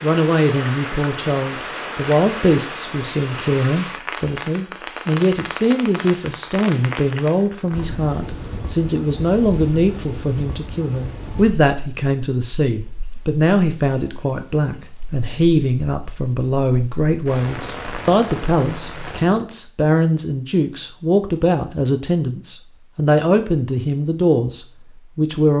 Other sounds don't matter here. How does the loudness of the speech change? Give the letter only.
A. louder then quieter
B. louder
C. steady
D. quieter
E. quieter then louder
C.